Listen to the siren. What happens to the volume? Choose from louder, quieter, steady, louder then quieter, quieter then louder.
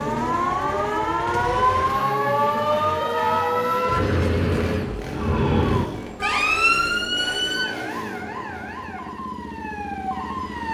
quieter.